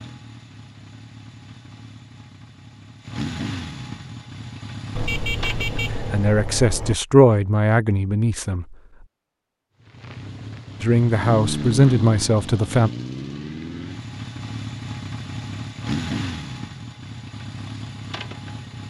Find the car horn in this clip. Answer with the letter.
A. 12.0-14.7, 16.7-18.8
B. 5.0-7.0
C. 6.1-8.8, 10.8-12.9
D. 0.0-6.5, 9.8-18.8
B.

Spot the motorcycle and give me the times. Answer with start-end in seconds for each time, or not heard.
0.0-6.5, 9.8-18.8.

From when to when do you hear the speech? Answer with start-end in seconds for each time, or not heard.
6.1-8.8, 10.8-12.9.